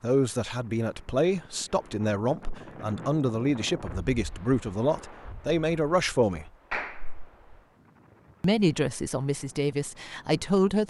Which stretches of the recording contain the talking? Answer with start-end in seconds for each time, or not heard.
0.0-6.5, 8.4-10.8.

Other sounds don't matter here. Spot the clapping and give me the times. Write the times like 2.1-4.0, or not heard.
6.7-7.3.